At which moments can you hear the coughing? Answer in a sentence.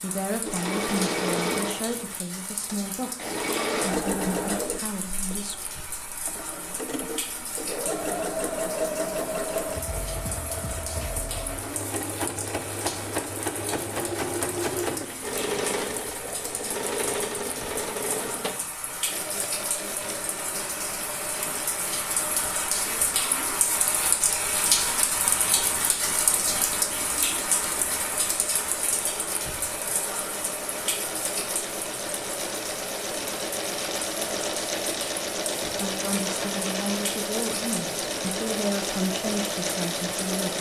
You can't hear the coughing here.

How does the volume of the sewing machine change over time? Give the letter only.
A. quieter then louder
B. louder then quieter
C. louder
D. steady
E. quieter
A.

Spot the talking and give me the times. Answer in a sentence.
You can hear the talking from 0.0 to 5.5 s and from 35.8 to 40.5 s.